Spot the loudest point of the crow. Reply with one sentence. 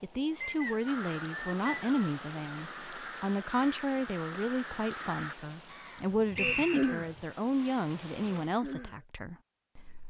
The volume of the crow peaks at 7 seconds.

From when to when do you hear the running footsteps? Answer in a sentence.
The running footsteps can't be heard in this clip.